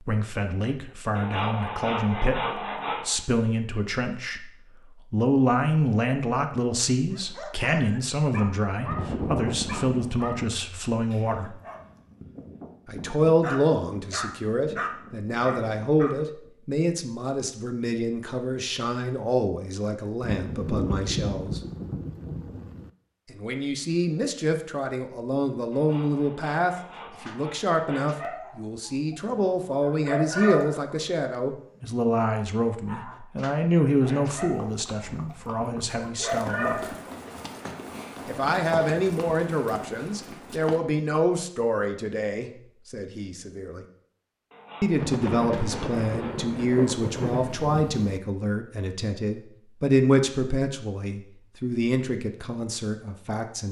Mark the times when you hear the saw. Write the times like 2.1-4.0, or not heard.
1.1-3.1, 25.7-28.4, 44.5-46.4.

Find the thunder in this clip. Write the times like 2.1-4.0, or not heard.
8.8-10.3, 20.2-22.9, 45.0-48.2.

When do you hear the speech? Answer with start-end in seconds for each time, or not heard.
0.1-4.5, 5.1-11.6, 12.8-21.6, 23.3-36.9, 38.2-43.8, 44.8-53.6.